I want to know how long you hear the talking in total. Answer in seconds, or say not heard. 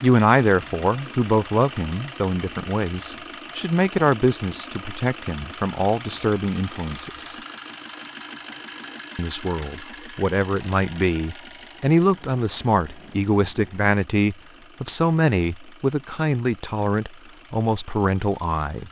17 s.